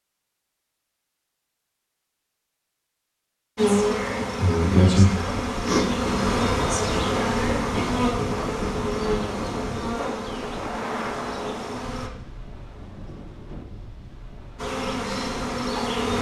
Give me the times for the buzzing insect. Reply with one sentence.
The buzzing insect can be heard from 3.5 to 12.1 s and from 14.6 to 16.1 s.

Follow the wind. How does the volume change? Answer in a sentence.
The loudness of the wind goes down.